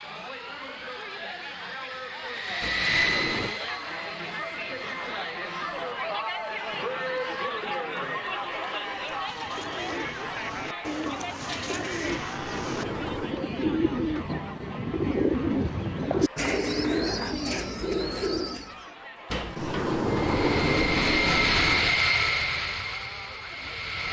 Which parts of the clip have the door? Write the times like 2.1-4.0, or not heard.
2.6-3.5, 12.2-13.4, 19.3-22.0.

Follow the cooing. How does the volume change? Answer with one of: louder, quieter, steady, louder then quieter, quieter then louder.
louder.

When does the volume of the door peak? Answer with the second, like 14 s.
21 s.